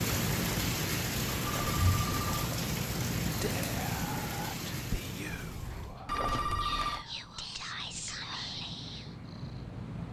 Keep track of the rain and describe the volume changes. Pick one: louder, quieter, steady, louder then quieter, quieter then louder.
quieter.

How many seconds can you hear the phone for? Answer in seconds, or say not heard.
2 s.